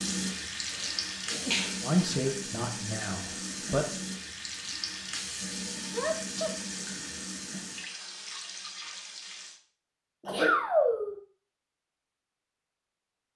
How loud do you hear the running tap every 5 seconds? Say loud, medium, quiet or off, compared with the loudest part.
loud, loud, off.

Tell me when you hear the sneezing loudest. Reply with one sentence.
The volume of the sneezing peaks at 11 seconds.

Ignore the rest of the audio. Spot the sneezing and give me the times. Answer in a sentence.
The sneezing can be heard from 1.3 to 2.1 s, from 5.9 to 6.5 s and from 10.2 to 11.2 s.